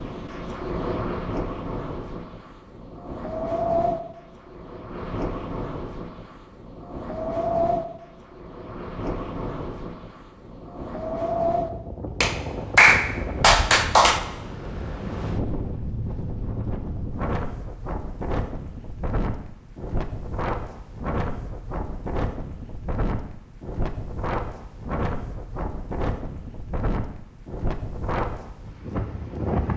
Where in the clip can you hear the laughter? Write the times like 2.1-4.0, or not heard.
not heard.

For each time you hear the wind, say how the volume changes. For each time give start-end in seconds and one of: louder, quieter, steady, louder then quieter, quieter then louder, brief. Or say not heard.
0.0-29.7 steady.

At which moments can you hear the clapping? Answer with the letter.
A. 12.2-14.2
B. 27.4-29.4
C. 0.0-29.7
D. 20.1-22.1
A.